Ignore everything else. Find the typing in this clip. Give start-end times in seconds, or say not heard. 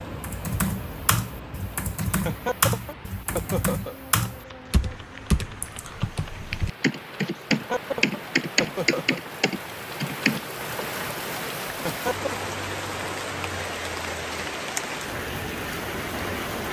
0.2-10.8.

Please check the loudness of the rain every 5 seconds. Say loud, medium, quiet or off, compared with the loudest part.
medium, medium, loud, loud.